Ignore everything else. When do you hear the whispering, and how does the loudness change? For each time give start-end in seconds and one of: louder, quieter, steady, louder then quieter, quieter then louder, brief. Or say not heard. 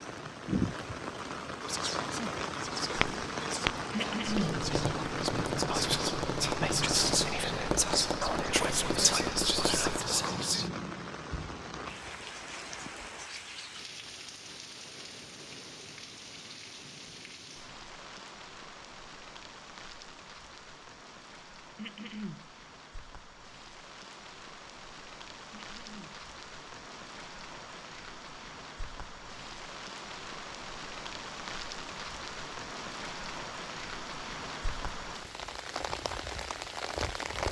1.6-10.7 louder.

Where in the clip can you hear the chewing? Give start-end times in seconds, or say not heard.
not heard.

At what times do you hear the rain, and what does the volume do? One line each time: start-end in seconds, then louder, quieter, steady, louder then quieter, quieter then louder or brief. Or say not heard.
0.0-37.4 quieter then louder.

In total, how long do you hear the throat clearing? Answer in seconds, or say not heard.
2 s.